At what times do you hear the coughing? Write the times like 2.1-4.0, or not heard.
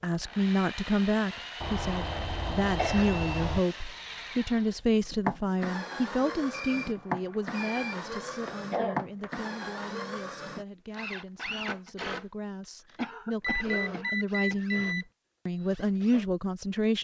2.6-3.2, 8.4-9.3, 12.9-14.8.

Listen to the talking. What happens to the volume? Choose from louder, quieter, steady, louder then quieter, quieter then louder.
quieter then louder.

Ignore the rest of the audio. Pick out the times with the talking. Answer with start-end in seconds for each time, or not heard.
0.0-16.9.